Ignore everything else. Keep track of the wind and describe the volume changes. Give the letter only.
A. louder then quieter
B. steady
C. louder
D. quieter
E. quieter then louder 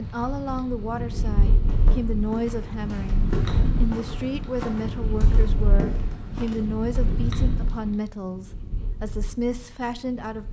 D.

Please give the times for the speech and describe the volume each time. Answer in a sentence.
The speech can be heard from 0.0 to 10.4 s, at a steady volume.